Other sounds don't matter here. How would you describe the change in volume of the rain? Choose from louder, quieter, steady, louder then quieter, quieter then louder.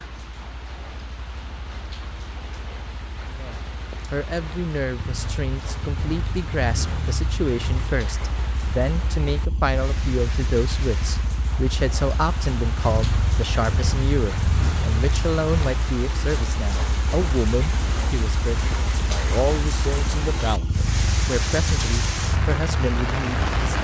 louder.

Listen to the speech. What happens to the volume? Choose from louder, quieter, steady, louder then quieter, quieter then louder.
steady.